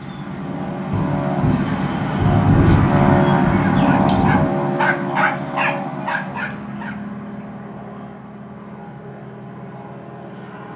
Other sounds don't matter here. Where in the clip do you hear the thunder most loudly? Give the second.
3 s.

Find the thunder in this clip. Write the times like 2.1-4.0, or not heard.
0.9-4.5.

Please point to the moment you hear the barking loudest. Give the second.
5 s.